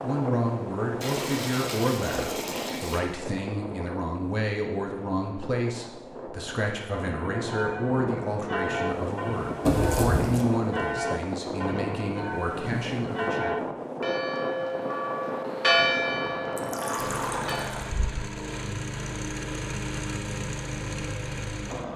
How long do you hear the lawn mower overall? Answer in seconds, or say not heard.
5 s.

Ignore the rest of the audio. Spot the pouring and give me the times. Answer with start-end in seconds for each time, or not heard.
1.0-3.0, 9.7-10.4, 16.6-17.9.